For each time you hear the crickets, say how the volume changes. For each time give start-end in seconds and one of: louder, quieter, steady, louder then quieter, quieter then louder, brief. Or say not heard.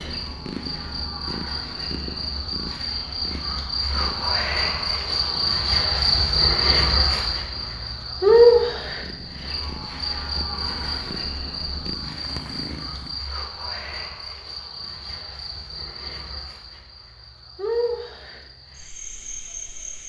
0.0-20.0 louder then quieter.